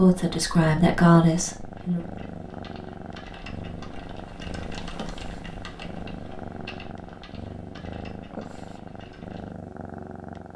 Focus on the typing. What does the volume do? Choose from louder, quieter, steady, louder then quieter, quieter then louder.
louder then quieter.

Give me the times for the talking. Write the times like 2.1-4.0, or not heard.
0.0-2.0.